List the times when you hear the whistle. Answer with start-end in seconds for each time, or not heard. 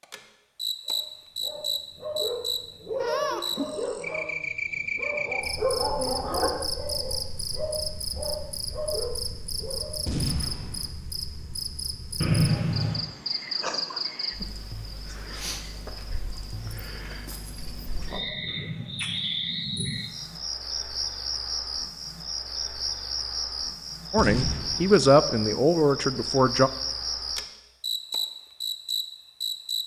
12.2-13.1, 18.4-20.1.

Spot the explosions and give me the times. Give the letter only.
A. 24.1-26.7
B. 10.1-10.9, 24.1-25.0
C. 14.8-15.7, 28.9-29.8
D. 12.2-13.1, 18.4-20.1
B.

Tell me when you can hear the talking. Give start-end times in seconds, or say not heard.
24.1-26.7.